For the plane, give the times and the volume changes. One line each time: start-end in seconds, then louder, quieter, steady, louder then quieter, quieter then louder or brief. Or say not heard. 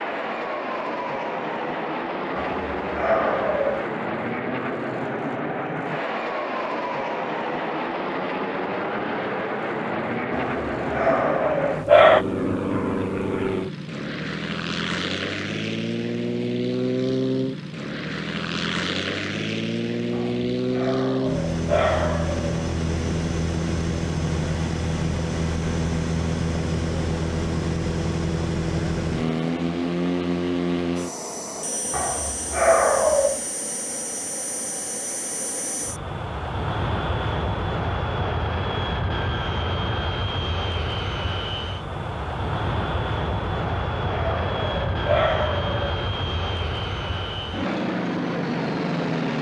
0.0-49.3 steady.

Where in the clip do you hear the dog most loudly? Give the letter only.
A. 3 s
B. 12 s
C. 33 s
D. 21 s
B.